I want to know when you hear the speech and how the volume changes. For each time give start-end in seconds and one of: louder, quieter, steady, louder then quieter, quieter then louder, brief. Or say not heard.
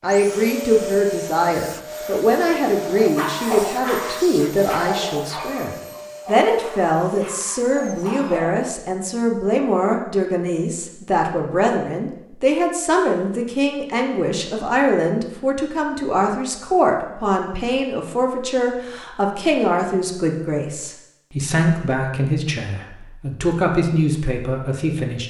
0.0-25.2 steady.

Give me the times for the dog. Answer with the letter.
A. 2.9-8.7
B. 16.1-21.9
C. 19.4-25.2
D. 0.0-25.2
A.